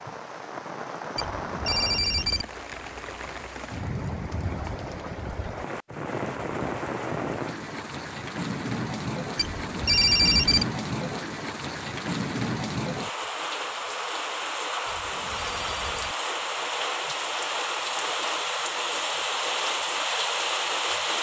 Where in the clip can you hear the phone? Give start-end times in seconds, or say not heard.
1.1-2.5, 9.3-10.7, 14.8-16.1.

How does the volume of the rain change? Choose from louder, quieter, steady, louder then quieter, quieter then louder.
louder.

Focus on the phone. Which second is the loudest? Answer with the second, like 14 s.
10 s.